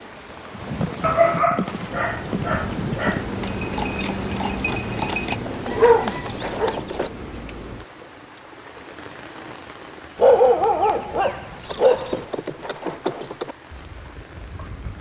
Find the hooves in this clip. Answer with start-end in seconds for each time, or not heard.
0.5-7.1, 11.7-14.9.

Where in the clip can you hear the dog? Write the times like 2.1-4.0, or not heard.
1.0-3.2, 5.7-6.8, 10.2-12.2.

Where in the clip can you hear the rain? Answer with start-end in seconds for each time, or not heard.
0.0-14.9.